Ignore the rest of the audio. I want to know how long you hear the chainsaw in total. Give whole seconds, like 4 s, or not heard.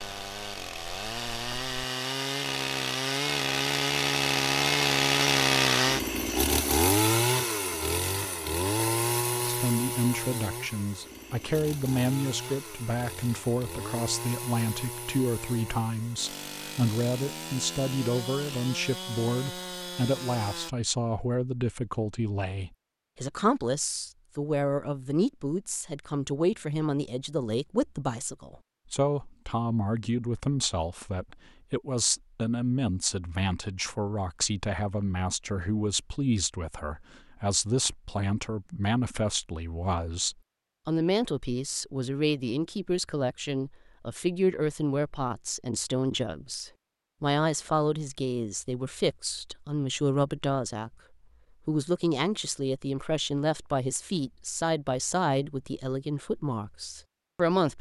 21 s.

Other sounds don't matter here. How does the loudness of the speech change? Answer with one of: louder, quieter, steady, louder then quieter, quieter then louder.
steady.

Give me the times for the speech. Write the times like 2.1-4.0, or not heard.
9.4-51.0, 51.6-57.7.